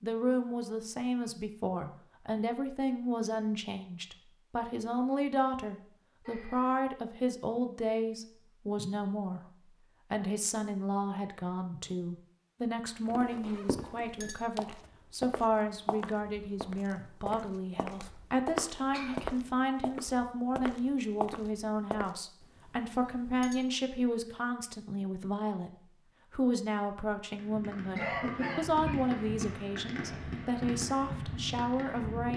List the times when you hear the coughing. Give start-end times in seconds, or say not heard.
6.2-6.8, 18.9-19.6, 27.9-29.1.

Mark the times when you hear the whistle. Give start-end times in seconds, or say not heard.
not heard.